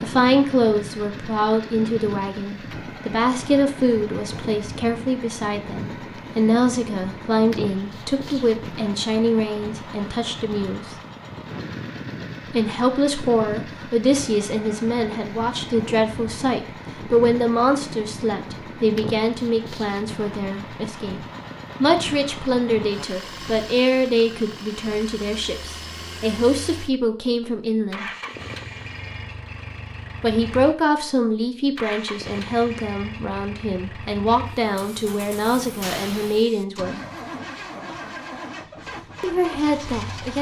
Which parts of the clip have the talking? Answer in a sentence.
You can hear the talking from 0.0 to 10.9 s, from 12.5 to 28.1 s, from 30.2 to 37.0 s and from 39.2 to 40.3 s.